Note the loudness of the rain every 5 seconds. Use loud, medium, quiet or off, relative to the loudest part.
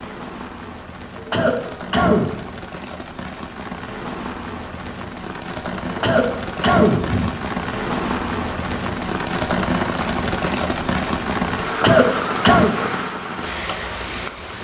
medium, loud, loud.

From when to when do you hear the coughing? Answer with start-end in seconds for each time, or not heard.
1.1-2.5, 5.8-7.3, 11.7-12.8.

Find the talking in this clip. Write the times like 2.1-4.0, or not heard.
not heard.